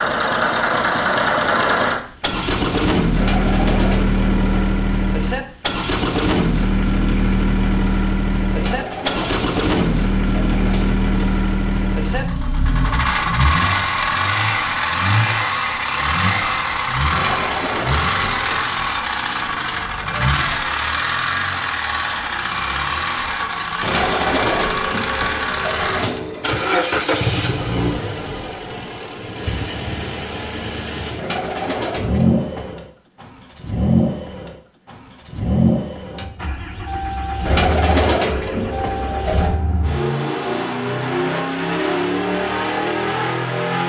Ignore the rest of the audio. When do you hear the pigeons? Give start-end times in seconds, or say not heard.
3.1-5.0, 8.5-11.5, 17.1-18.8, 23.8-26.8, 31.1-32.8, 37.5-39.6.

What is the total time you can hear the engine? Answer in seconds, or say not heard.
44 s.